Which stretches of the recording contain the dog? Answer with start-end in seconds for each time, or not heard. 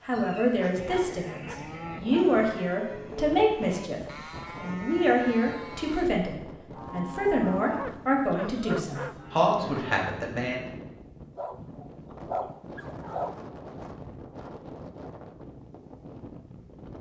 0.6-2.4, 7.8-9.2, 11.3-13.3.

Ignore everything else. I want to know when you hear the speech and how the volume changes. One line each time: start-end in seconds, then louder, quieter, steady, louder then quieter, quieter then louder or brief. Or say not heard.
0.1-10.7 steady.